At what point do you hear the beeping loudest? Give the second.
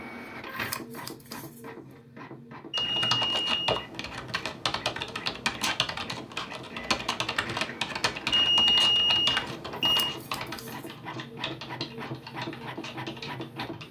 9 s.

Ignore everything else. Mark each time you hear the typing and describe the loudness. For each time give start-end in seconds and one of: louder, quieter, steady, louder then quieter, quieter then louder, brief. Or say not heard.
2.8-13.8 quieter.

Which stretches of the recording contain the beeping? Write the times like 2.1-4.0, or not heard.
2.7-3.8, 8.3-10.1.